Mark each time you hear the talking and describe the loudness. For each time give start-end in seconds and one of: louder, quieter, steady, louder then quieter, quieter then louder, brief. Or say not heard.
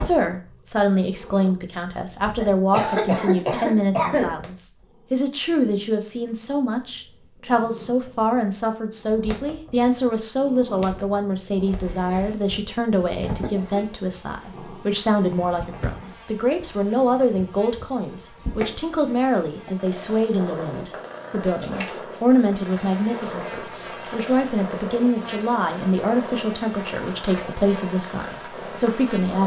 0.0-29.4 steady.